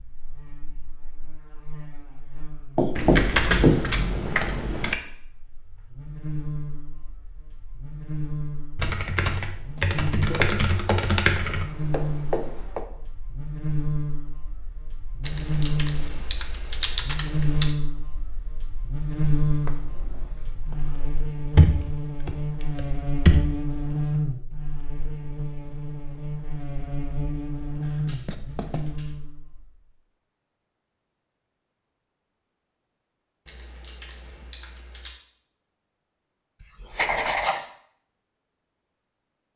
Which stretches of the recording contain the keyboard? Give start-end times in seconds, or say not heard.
3.0-5.0, 8.8-11.7, 15.2-17.7, 21.6-23.6, 27.8-29.1, 33.5-35.1.